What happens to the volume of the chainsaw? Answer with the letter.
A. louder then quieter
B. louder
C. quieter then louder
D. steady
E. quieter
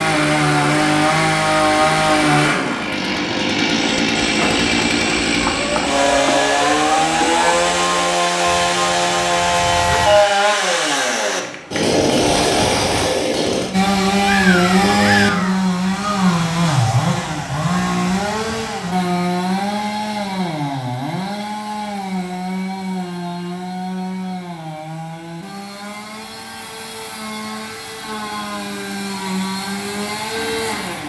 E.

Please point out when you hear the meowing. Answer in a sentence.
You can hear the meowing from 14.2 to 15.7 s.